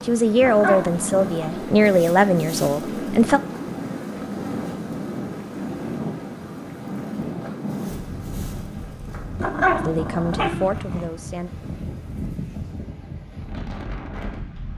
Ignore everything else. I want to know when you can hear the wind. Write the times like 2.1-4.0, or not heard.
0.0-14.7.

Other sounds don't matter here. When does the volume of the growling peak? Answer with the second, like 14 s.
10 s.